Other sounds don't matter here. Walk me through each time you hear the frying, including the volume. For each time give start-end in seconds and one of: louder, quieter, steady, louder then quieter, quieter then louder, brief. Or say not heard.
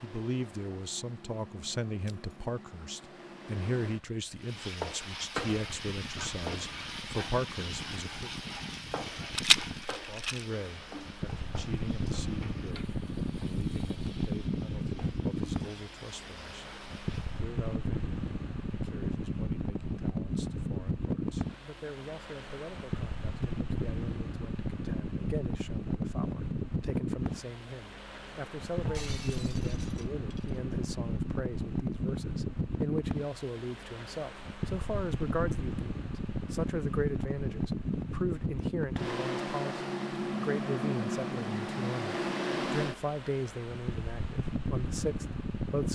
4.4-17.4 quieter.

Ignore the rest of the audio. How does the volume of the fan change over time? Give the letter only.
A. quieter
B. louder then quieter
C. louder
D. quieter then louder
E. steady
C.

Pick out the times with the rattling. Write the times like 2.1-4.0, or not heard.
9.3-10.4.